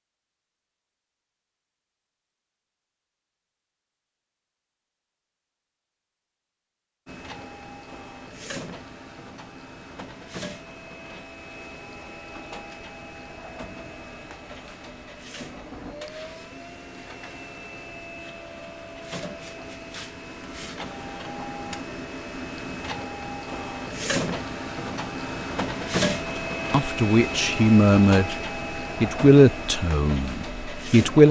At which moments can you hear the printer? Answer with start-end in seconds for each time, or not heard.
7.0-31.2.